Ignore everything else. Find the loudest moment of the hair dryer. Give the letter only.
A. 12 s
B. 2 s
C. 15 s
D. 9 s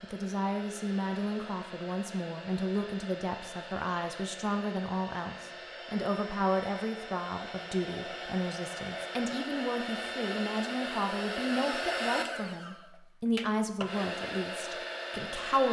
A.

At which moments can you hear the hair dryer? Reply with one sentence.
The hair dryer can be heard from 0.0 to 15.6 s.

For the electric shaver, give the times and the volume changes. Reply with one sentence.
You can't hear the electric shaver here.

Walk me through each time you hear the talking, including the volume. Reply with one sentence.
You can hear the talking from 0.0 to 15.6 s, at a steady volume.